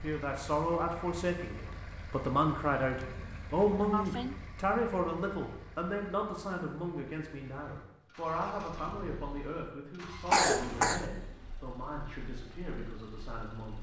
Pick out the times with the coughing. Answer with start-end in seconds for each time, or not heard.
3.0-4.4, 10.3-11.1.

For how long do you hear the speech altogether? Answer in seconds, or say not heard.
14 s.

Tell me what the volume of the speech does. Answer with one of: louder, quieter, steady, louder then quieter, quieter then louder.
quieter.